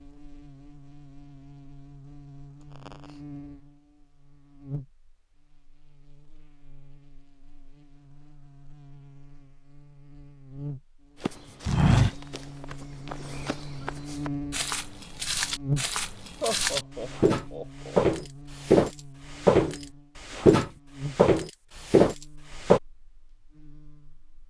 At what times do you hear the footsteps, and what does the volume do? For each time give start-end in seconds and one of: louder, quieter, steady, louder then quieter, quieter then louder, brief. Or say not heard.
11.2-22.8 quieter then louder.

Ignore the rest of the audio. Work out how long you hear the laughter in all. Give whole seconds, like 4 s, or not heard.
2 s.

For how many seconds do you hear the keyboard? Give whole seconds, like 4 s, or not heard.
not heard.